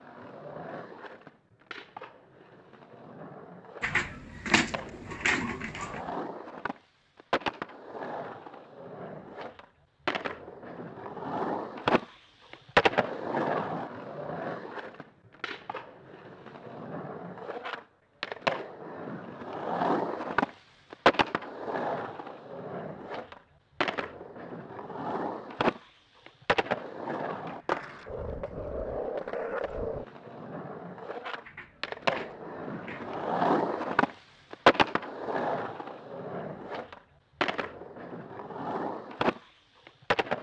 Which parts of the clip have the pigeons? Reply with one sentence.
The pigeons can be heard from 3.8 to 6.0 s and from 31.4 to 33.2 s.